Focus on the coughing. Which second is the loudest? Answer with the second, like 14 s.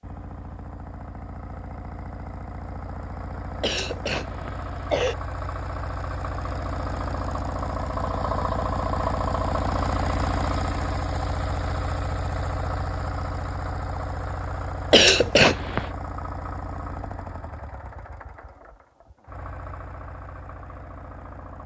15 s.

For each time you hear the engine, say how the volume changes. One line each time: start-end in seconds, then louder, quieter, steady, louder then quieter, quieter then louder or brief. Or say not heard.
0.0-21.6 louder then quieter.